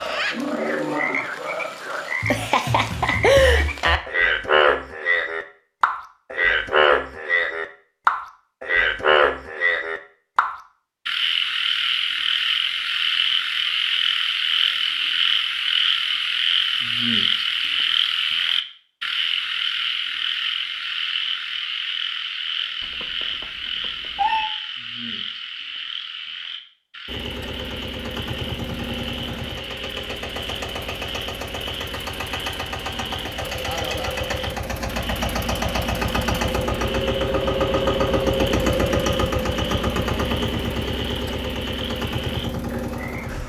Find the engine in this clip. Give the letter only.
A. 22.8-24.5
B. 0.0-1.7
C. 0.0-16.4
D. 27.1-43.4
D.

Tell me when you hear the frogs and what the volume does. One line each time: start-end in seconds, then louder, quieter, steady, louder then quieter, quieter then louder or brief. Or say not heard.
0.0-43.4 quieter.